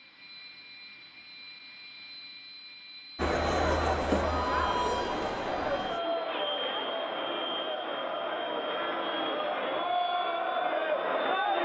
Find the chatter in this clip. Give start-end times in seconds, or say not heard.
3.1-11.6.